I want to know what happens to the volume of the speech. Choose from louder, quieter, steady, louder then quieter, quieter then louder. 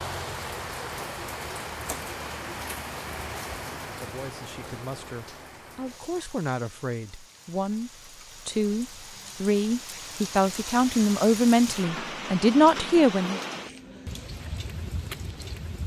louder.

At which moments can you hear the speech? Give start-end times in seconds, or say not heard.
3.8-13.4.